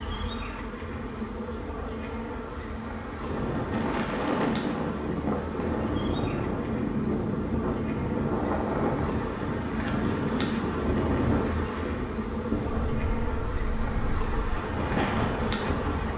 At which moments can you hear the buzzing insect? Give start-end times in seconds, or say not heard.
0.0-16.1.